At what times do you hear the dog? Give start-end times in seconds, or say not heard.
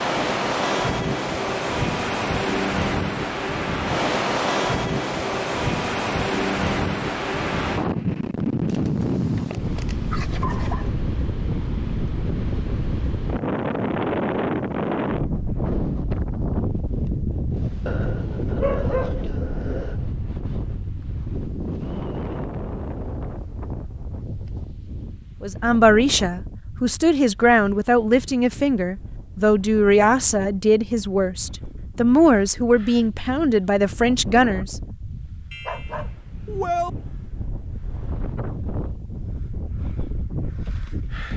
8.7-10.9, 17.9-20.1, 35.5-36.9.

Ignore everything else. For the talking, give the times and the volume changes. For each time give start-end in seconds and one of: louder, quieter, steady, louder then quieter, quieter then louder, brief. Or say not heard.
25.4-34.8 steady.